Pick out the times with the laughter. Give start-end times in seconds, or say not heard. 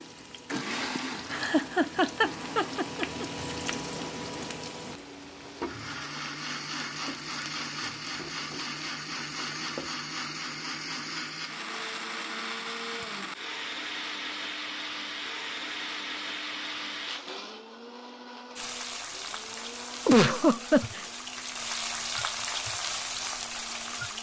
0.9-3.2, 20.1-21.0.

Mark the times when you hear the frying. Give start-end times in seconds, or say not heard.
0.0-9.9, 18.6-24.1.